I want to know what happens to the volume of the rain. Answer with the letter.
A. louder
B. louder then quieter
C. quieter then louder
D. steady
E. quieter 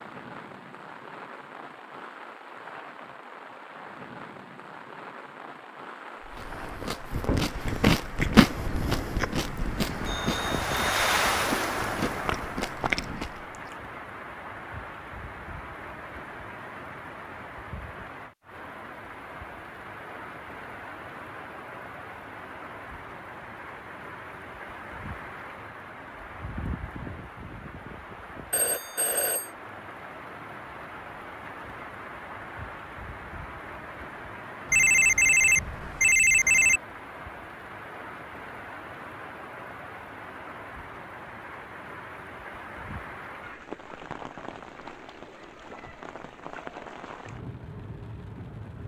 B.